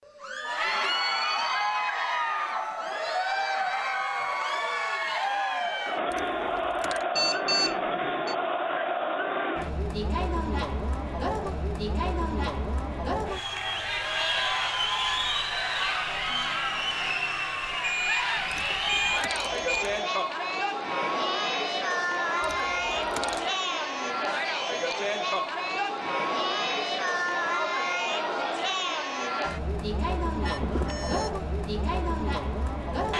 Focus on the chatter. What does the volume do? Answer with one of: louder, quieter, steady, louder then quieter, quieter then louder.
steady.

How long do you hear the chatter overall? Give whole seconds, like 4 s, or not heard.
33 s.